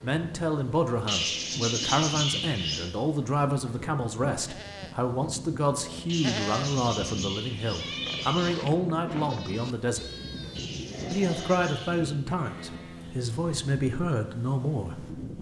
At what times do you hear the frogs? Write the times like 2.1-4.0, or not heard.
not heard.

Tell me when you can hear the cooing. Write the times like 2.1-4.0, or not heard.
1.1-2.9, 6.0-8.6, 10.6-12.2.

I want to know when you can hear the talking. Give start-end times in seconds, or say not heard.
0.0-10.1, 11.1-15.1.